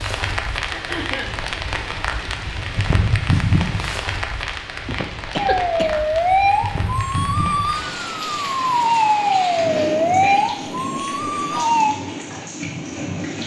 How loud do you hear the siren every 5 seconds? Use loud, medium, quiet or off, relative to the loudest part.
off, loud, loud.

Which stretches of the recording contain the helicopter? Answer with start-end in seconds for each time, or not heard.
not heard.